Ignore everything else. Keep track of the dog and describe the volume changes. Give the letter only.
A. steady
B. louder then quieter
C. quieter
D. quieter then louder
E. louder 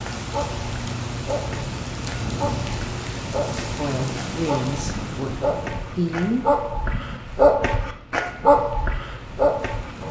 E.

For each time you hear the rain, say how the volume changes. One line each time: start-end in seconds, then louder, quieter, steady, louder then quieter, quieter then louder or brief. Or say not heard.
0.0-10.0 quieter.